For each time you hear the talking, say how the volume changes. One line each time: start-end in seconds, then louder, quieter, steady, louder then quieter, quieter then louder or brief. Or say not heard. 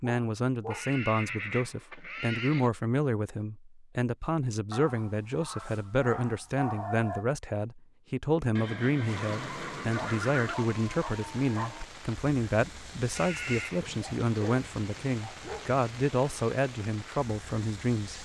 0.0-18.1 steady.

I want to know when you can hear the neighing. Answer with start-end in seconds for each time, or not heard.
0.7-2.7, 8.6-10.6, 13.2-13.8.